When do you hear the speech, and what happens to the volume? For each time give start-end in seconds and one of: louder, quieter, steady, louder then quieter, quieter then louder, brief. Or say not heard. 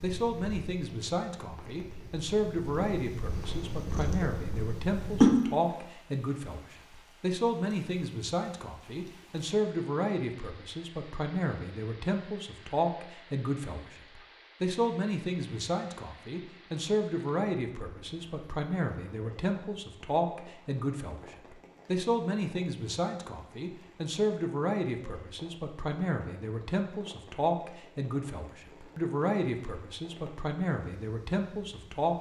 0.0-32.1 steady.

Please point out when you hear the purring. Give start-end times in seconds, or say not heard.
0.0-5.3.